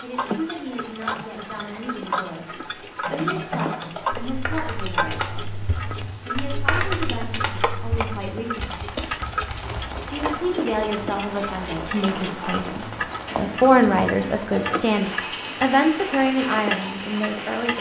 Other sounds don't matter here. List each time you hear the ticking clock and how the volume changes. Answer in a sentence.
The ticking clock can be heard from 0.0 to 17.7 s, at a steady volume.